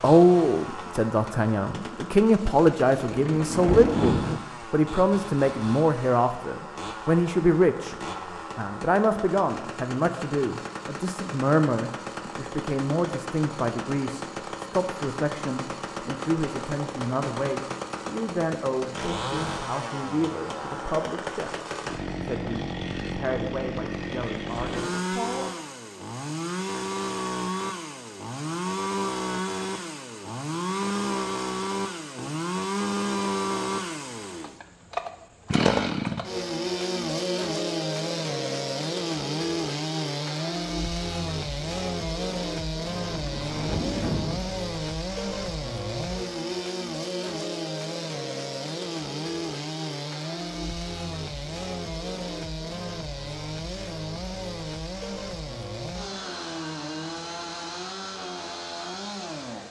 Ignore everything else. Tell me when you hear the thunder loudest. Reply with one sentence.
The volume of the thunder peaks at 4 seconds.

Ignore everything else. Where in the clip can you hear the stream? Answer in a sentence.
The stream can't be heard in this clip.